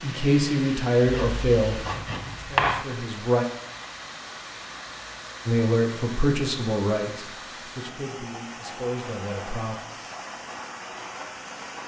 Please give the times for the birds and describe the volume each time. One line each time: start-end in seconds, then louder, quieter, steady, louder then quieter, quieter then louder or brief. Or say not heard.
not heard.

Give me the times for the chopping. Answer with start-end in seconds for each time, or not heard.
1.1-2.9.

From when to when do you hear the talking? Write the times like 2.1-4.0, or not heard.
0.0-3.5, 5.5-9.8.